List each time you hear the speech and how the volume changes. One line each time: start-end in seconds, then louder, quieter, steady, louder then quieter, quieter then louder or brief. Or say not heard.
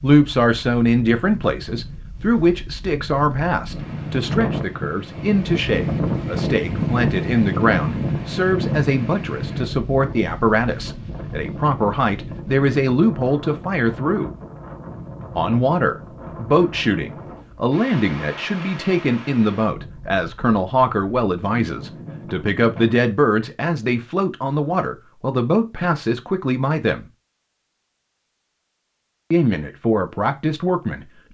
0.0-14.3 steady
15.3-27.1 steady
29.3-31.1 brief.